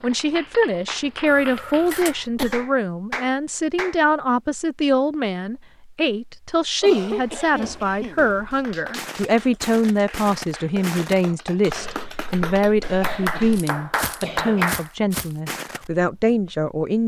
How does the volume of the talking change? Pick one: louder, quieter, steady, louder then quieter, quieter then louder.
steady.